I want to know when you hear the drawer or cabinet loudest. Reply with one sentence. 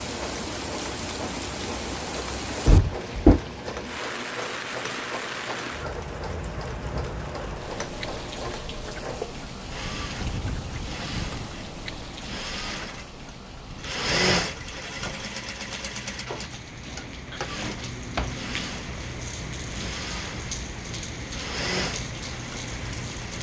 The loudest moment of the drawer or cabinet is at 3 seconds.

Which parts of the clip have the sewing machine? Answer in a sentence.
You can hear the sewing machine from 0.0 to 23.3 s.